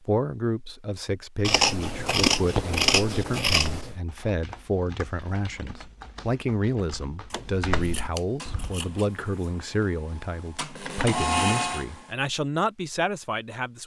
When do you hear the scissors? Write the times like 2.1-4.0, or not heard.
1.4-4.0, 7.3-9.5.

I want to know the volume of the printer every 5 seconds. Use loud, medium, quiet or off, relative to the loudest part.
off, quiet, loud.